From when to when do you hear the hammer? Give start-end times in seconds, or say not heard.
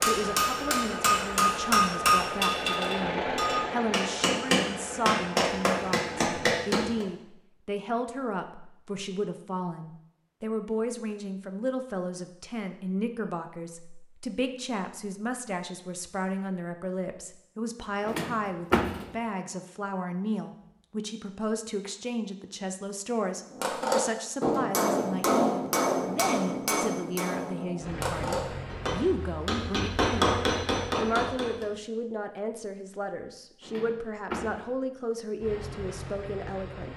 0.0-7.0, 23.5-31.6.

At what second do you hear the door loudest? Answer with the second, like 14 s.
19 s.